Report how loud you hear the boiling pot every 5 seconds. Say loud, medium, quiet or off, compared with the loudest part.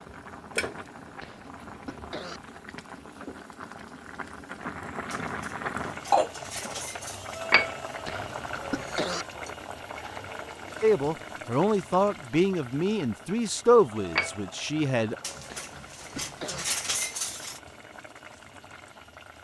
medium, loud, medium, quiet.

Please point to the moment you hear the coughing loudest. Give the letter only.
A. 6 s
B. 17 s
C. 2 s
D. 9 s
D.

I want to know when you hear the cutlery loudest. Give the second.
17 s.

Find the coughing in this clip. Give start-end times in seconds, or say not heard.
1.2-2.4, 8.1-9.2, 15.4-16.6.